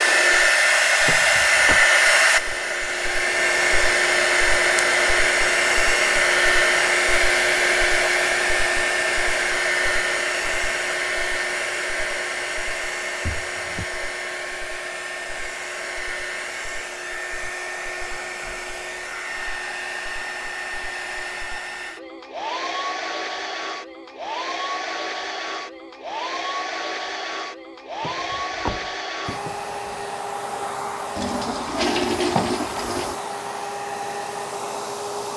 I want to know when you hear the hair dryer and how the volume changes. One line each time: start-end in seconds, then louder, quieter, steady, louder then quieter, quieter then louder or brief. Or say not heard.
0.0-35.3 quieter.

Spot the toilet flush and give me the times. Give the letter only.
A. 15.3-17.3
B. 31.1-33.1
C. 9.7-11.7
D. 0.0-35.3
B.